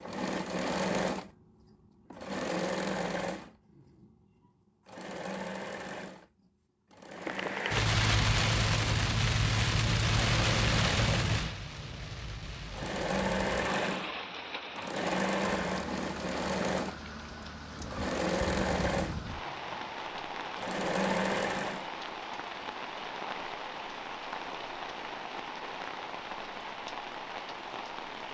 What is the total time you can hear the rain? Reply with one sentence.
The rain can be heard for 21 seconds in total.